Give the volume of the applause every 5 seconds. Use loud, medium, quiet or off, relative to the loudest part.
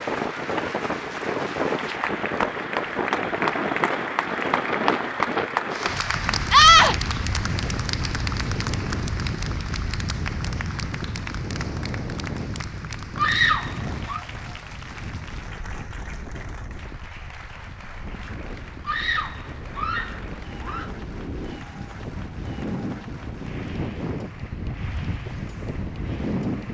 loud, loud, medium, quiet, quiet, quiet.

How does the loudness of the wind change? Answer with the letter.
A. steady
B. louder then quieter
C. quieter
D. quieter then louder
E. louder
D.